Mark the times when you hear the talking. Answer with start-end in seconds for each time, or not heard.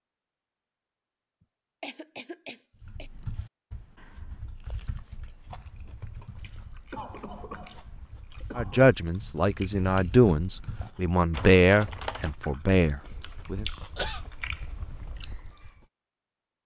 8.6-13.7.